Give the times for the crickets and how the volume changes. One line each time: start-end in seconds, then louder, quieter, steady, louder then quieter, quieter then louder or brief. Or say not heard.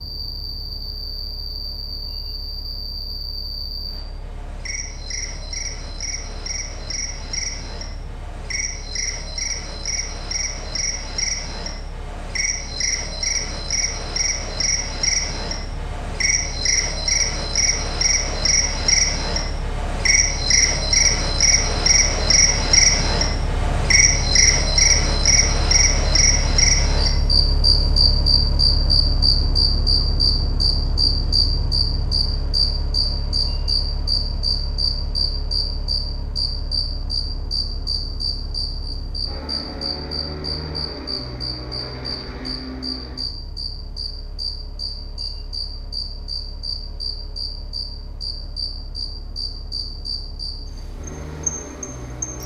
0.0-52.4 louder then quieter.